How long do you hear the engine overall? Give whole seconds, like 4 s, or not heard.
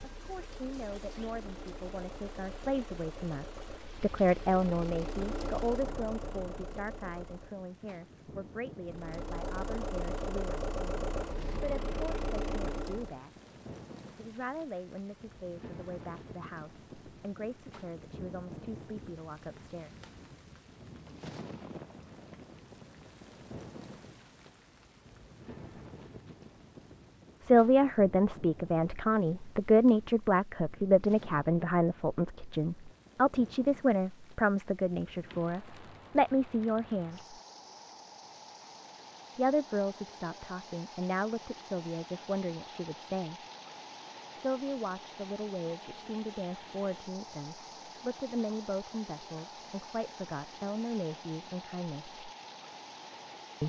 12 s.